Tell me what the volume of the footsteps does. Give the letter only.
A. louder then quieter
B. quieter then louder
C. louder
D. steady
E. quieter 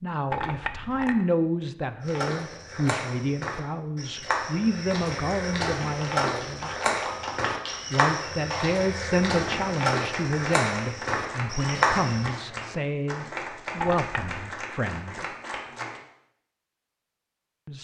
C.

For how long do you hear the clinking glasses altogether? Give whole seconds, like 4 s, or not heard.
2 s.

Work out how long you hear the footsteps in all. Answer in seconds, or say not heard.
10 s.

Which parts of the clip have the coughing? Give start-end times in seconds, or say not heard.
not heard.